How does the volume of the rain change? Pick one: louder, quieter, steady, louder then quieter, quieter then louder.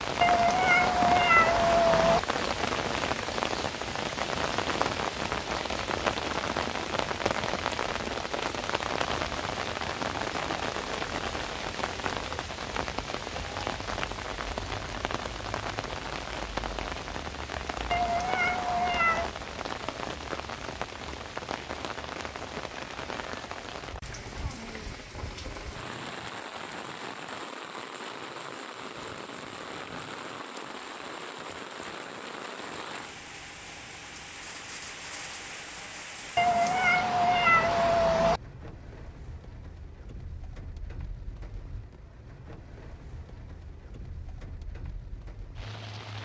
quieter.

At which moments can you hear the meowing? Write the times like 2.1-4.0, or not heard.
0.2-2.2, 17.9-19.3, 36.4-38.4.